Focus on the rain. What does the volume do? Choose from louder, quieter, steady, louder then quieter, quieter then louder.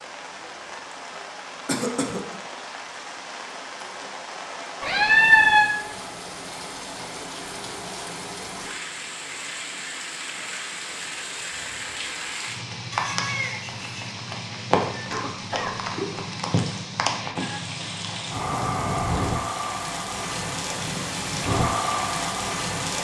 louder.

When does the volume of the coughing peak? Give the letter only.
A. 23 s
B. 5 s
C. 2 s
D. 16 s
C.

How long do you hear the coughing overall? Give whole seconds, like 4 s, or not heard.
2 s.